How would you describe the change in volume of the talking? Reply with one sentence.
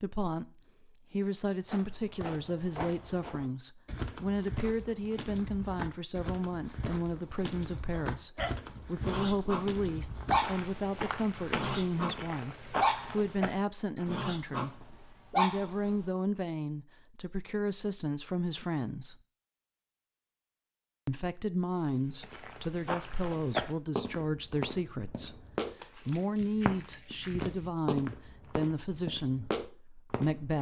The loudness of the talking stays about the same.